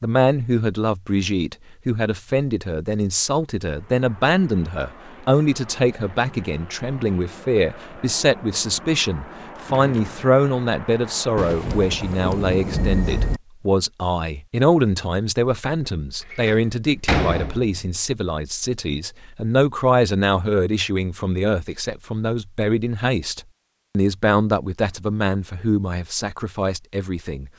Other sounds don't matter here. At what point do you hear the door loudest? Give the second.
17 s.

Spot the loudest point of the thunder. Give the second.
13 s.